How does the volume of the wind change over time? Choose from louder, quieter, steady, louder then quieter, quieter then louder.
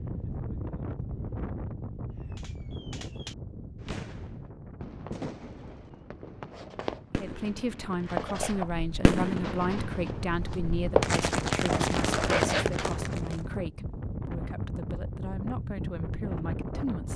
quieter then louder.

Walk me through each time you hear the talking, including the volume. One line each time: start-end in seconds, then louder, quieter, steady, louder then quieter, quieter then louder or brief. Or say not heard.
7.2-17.1 quieter.